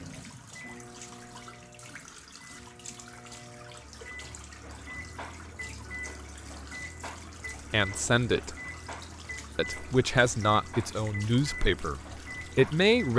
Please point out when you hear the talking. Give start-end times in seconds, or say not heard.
7.7-8.6, 9.6-13.1.